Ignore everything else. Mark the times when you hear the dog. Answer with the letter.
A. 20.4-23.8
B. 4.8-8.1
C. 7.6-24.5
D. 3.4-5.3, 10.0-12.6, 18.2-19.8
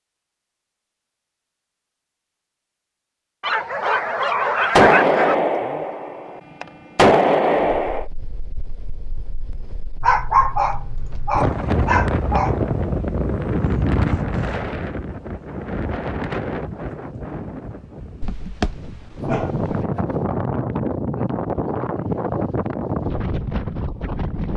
D.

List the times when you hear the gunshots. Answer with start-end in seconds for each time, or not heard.
4.8-8.1.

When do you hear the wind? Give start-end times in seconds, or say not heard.
7.6-24.5.